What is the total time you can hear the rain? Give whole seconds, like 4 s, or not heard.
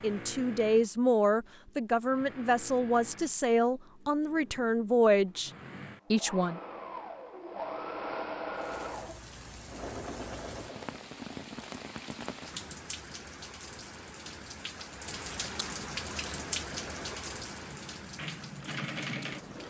11 s.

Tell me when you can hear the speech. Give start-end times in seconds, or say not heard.
0.0-5.5, 6.1-6.6.